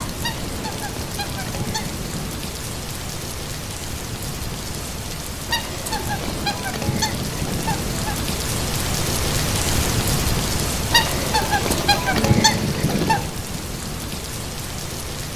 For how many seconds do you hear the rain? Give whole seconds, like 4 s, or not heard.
15 s.